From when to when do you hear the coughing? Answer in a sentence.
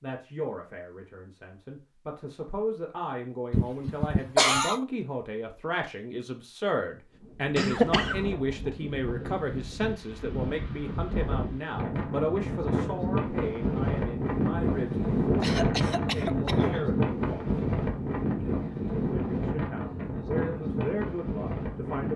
You can hear the coughing from 3.5 to 4.8 s, from 7.5 to 8.2 s and from 15.4 to 16.9 s.